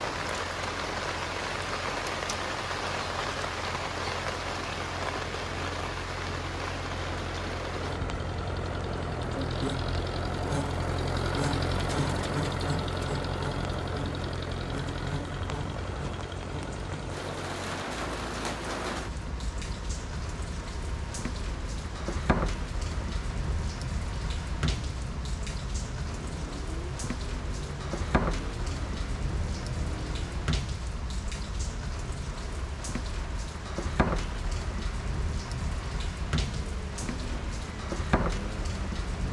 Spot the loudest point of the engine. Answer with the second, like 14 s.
12 s.